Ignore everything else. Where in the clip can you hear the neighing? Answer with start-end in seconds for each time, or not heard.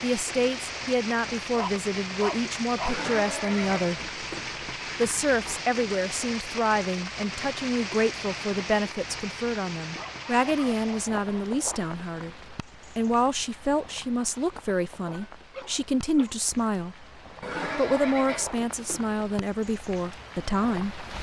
2.9-4.8, 17.4-19.3.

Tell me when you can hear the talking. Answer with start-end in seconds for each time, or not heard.
0.0-4.0, 5.0-17.1, 17.6-21.0.